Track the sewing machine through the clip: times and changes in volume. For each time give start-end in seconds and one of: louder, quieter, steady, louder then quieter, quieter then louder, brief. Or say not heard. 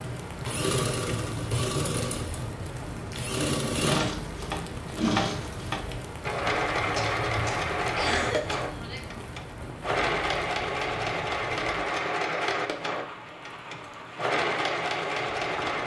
0.2-15.8 steady.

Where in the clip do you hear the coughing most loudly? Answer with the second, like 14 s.
8 s.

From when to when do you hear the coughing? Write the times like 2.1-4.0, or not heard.
7.0-9.0.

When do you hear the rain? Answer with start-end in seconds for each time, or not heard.
0.0-15.8.